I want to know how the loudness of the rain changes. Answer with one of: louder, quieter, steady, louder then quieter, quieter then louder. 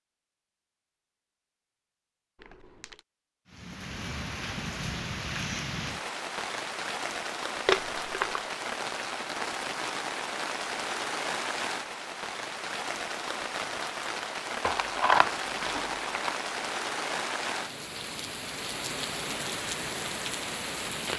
steady.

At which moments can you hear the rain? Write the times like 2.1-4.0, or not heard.
3.5-21.1.